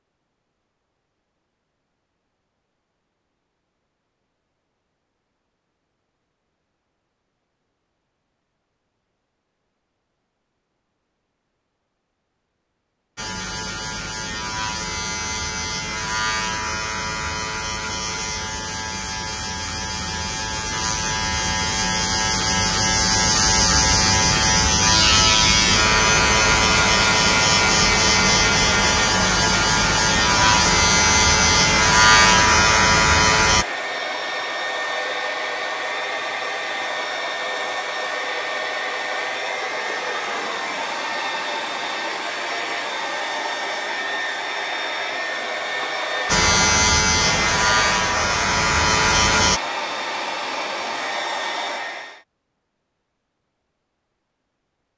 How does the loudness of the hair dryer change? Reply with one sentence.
The volume of the hair dryer stays about the same.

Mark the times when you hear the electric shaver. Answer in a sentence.
You can hear the electric shaver from 13.2 to 33.6 s and from 46.2 to 49.6 s.